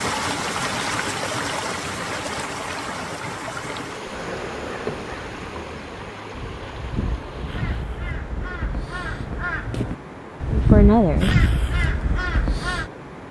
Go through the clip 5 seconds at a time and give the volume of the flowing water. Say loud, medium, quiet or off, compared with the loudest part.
loud, medium, medium.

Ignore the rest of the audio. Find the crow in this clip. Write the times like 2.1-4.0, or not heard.
4.1-12.8.